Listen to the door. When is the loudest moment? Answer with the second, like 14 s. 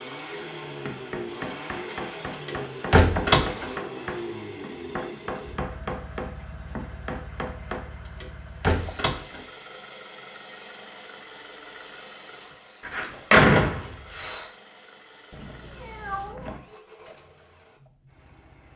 13 s.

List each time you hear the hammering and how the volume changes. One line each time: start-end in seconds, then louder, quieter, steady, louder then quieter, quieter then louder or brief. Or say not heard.
0.7-7.9 steady.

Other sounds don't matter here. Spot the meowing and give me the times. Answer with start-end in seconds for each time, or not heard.
15.3-16.6.